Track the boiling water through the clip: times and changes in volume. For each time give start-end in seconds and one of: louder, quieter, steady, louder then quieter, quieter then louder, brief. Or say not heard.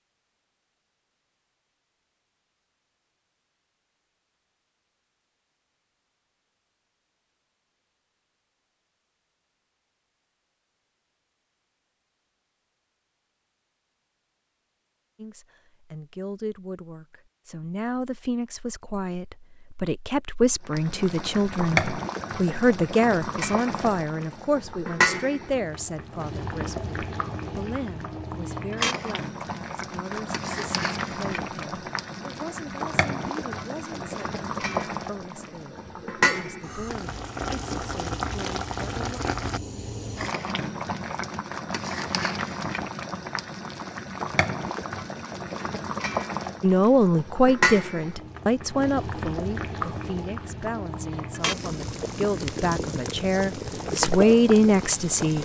20.6-55.4 steady.